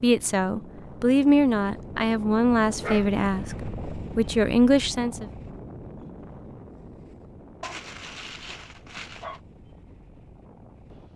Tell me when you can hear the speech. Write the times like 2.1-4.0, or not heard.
0.0-5.2.